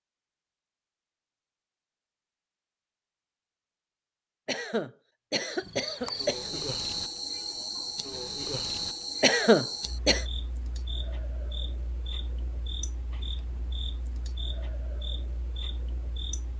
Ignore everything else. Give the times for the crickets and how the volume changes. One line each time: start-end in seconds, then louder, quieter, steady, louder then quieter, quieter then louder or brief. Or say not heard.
5.5-16.5 quieter.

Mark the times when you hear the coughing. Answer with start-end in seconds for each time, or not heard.
4.5-6.7, 9.2-10.2.